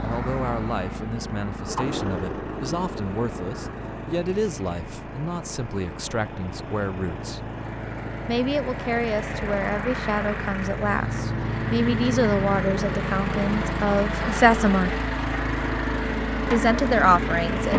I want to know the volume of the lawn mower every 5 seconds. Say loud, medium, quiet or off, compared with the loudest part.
medium, medium, loud, loud.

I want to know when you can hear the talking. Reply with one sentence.
You can hear the talking from 0.0 to 7.4 s, from 8.2 to 14.9 s and from 16.4 to 17.7 s.